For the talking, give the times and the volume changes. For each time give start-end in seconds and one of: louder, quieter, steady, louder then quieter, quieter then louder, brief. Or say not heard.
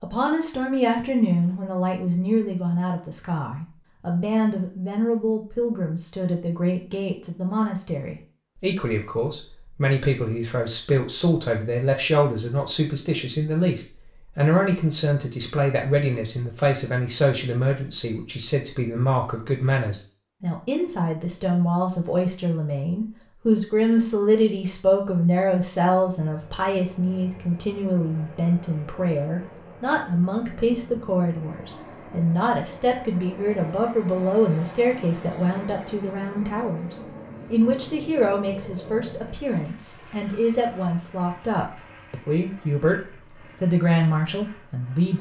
0.0-45.1 steady.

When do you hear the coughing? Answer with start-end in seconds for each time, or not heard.
not heard.